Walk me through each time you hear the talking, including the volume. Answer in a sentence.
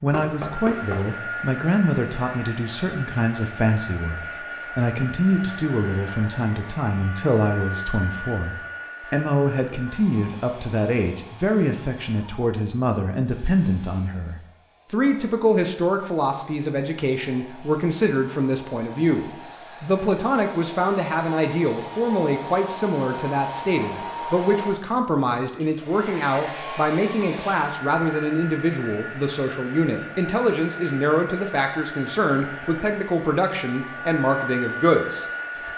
The talking can be heard from 0.0 to 35.7 s, at a steady volume.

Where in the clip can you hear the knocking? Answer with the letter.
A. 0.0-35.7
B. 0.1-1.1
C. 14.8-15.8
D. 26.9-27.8
B.